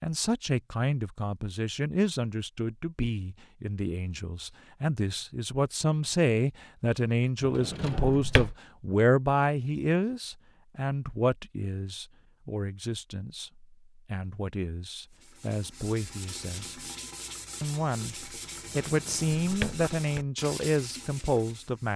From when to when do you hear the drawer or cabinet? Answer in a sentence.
The drawer or cabinet can be heard from 7.4 to 8.6 s and from 18.8 to 20.2 s.